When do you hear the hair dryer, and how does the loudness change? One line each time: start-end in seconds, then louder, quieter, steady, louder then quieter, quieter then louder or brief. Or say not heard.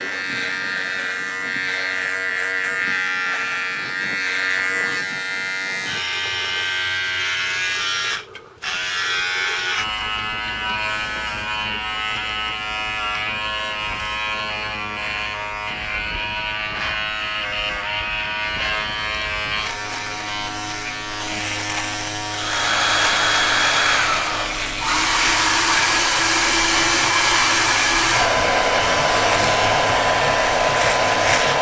22.2-31.5 steady.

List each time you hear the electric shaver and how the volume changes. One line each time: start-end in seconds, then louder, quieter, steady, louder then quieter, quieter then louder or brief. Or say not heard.
0.0-31.5 steady.